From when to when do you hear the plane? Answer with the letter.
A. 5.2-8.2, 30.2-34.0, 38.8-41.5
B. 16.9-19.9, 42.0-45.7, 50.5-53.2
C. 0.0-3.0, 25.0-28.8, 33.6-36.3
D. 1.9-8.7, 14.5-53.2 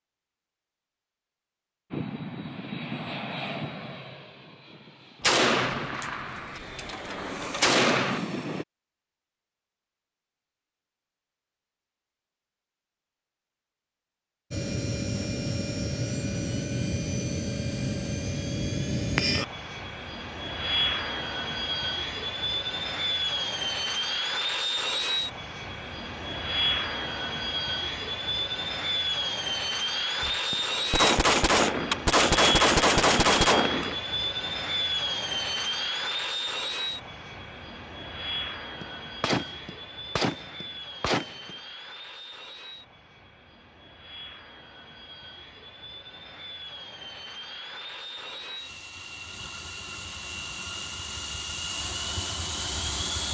D.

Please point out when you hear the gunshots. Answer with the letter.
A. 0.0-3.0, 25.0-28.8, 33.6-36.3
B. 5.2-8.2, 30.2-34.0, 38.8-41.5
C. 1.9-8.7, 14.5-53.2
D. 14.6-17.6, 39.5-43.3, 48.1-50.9
B.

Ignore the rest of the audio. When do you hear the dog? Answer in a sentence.
You can't hear the dog here.